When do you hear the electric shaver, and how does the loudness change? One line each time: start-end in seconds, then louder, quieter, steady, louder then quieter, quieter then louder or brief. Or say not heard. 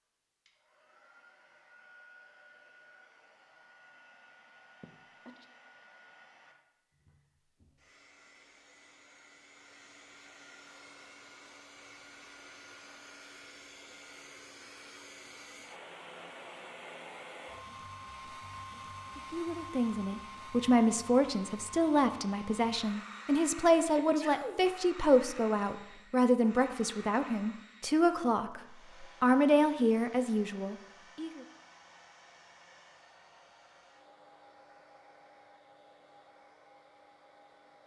not heard.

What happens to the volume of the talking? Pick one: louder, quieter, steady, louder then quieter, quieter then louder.
steady.